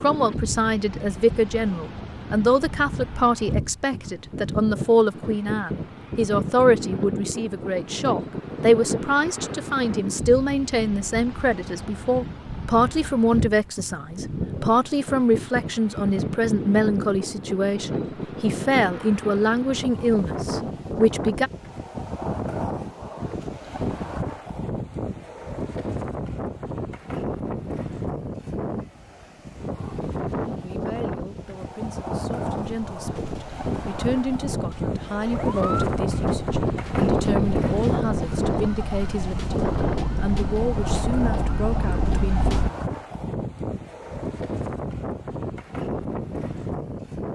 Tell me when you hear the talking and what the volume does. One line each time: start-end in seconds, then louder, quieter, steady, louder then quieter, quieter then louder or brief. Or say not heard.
0.0-21.5 steady
30.6-42.5 louder.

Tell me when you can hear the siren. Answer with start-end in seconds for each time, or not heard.
32.5-42.7.